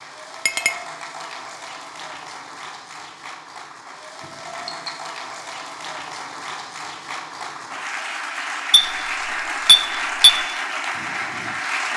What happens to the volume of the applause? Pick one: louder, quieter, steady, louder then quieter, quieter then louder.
louder.